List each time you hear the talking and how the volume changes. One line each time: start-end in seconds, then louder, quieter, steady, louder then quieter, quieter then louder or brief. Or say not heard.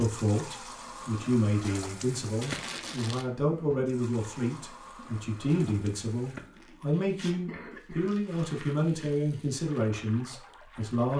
0.0-11.1 steady.